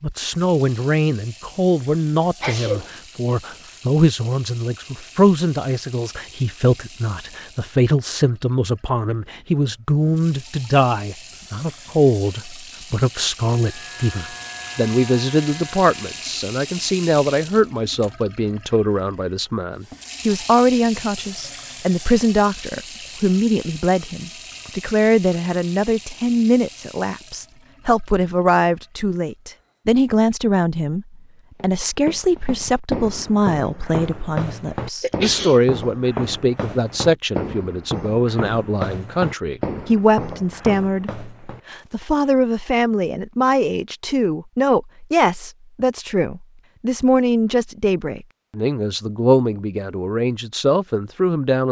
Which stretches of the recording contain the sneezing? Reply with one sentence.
The sneezing can be heard from 2.4 to 2.9 s and from 35.0 to 35.6 s.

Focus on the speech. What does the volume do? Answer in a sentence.
The volume of the speech stays about the same.